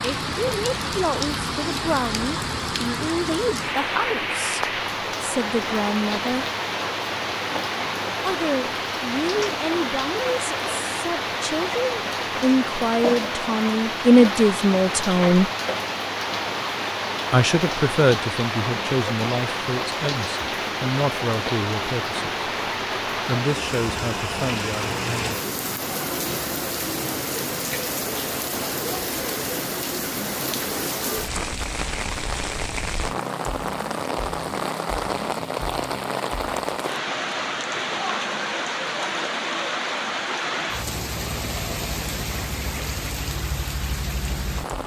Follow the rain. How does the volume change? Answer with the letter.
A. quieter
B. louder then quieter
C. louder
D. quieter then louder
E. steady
E.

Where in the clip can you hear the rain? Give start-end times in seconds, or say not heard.
0.0-44.8.